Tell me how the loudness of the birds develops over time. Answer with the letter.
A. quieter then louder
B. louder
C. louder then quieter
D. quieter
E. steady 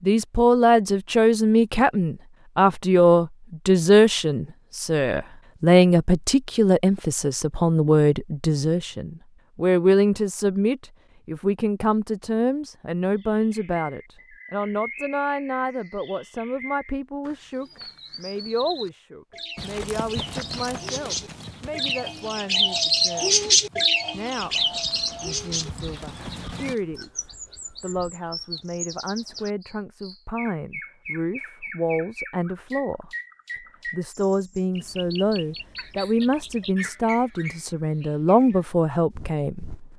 C.